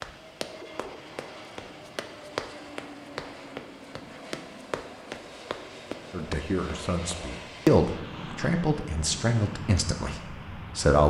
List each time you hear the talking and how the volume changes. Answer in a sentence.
You can hear the talking from 6.1 to 11.0 s, getting louder then quieter.